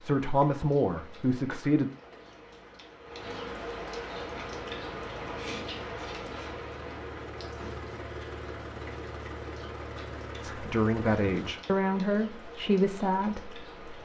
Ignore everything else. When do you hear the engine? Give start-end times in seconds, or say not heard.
4.2-11.6.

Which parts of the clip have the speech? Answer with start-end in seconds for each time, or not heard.
0.0-1.9, 10.4-14.0.